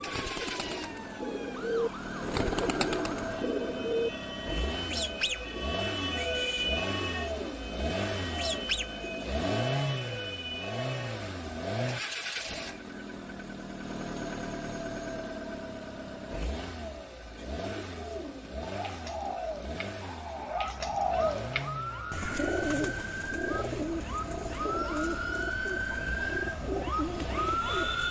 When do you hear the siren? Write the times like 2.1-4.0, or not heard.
0.0-11.2, 20.0-28.0.